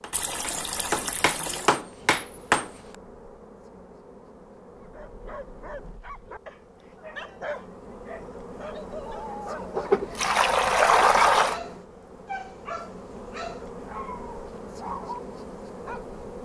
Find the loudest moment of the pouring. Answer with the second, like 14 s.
11 s.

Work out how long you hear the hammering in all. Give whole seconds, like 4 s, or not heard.
3 s.